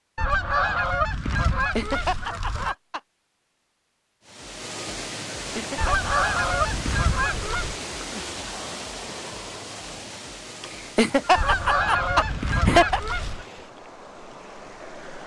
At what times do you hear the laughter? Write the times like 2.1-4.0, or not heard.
1.6-3.0, 5.3-6.1, 10.6-13.0.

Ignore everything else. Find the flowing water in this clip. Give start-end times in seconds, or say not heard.
4.2-15.2.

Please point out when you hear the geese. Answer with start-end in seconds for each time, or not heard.
0.1-2.8, 5.8-7.8, 11.3-13.4.